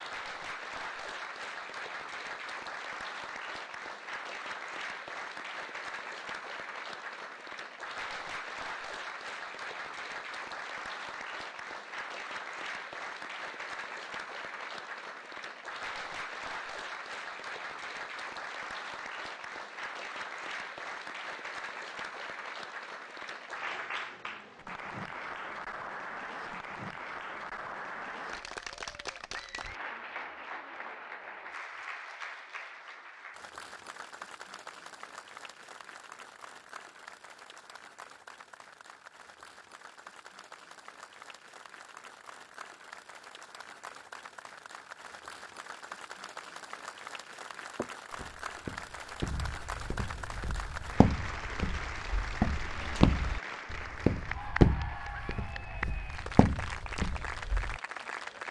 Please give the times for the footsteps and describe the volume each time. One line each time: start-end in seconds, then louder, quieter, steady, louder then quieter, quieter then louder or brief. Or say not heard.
47.8-57.8 louder then quieter.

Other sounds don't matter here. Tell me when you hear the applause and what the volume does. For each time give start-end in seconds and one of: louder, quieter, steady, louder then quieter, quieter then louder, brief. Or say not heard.
0.0-58.4 quieter then louder.